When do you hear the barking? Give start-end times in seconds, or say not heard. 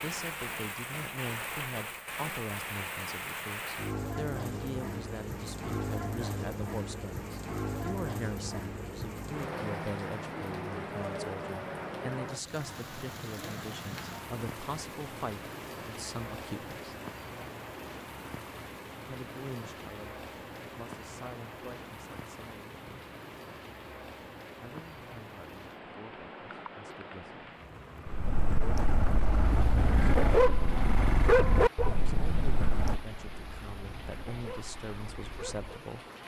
28.1-35.8.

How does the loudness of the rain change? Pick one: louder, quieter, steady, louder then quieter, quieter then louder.
quieter.